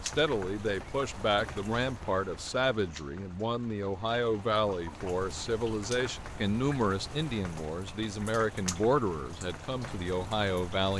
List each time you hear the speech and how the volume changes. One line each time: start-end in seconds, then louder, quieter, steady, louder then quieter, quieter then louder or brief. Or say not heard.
0.0-10.9 steady.